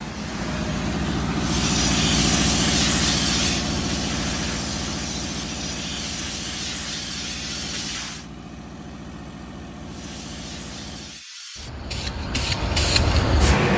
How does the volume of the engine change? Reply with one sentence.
The loudness of the engine goes down.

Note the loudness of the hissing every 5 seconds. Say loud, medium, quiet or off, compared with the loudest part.
loud, medium, loud.